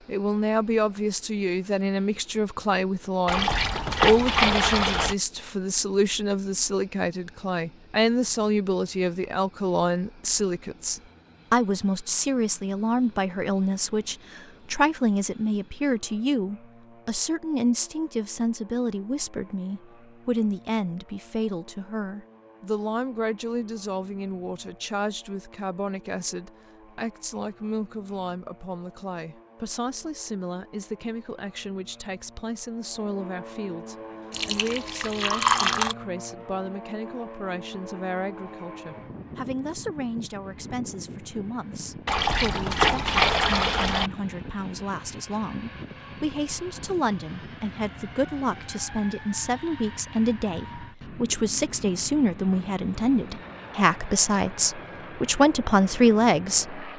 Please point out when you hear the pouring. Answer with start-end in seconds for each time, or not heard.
3.2-5.2, 34.3-36.0, 42.0-44.1.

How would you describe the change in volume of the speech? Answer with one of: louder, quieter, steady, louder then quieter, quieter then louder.
quieter then louder.